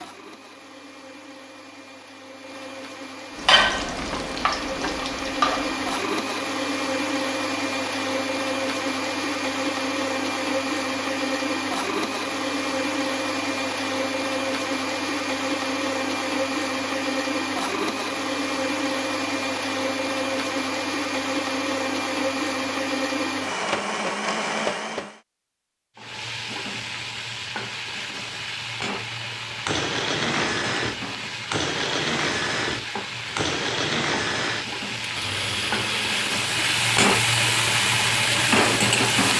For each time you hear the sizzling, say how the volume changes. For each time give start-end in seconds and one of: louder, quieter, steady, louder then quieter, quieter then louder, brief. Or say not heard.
3.4-6.0 brief
25.9-39.3 louder.